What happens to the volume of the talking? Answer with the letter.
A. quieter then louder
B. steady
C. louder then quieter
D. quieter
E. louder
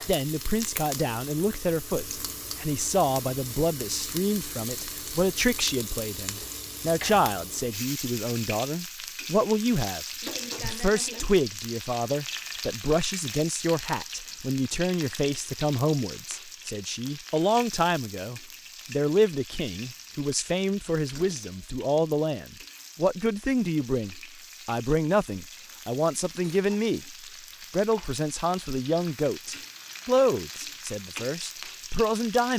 B.